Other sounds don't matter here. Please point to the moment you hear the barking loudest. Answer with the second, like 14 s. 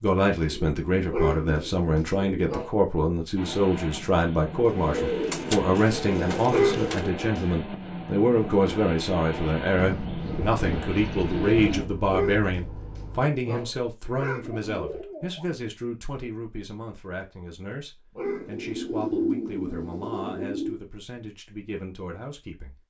7 s.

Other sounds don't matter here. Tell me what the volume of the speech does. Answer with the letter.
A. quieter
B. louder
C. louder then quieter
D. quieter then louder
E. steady
A.